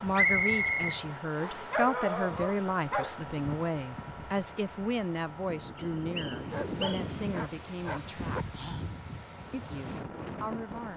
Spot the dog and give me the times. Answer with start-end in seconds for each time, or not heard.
1.7-3.2, 6.5-8.4.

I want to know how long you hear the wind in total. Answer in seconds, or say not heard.
11 s.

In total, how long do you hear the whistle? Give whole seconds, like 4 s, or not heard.
3 s.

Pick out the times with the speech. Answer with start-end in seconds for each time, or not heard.
0.0-8.6, 9.5-10.9.